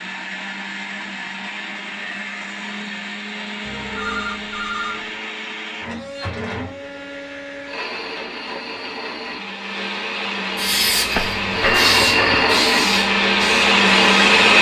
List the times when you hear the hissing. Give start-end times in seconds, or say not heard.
10.6-14.5.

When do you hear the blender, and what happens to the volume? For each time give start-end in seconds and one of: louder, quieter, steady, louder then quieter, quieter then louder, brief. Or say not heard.
0.0-14.5 louder.